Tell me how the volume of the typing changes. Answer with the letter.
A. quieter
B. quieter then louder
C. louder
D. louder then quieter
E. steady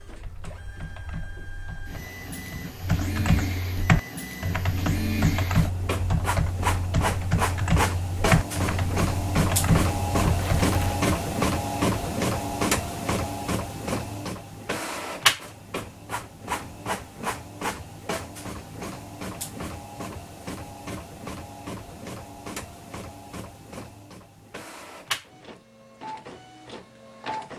C.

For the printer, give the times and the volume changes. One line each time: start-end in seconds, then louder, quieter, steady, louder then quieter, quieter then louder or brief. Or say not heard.
0.0-27.5 louder then quieter.